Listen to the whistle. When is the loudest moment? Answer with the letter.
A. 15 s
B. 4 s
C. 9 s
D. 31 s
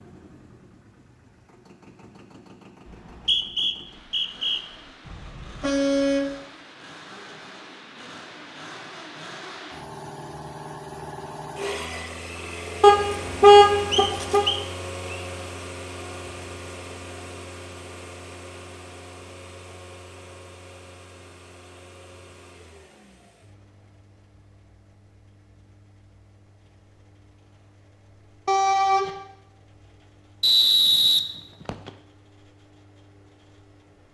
D.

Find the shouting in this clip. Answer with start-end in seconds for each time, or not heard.
not heard.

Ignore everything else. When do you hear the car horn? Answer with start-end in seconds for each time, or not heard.
5.0-6.3, 12.8-14.4, 28.4-29.1.